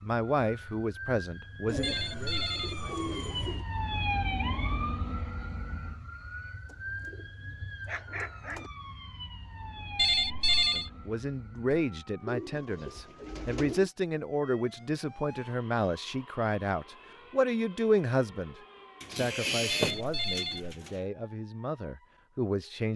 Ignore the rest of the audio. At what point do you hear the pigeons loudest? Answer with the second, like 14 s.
20 s.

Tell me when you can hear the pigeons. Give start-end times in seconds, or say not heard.
1.6-3.6, 6.7-8.7, 12.2-13.9, 19.0-20.9.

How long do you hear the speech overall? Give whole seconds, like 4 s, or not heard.
15 s.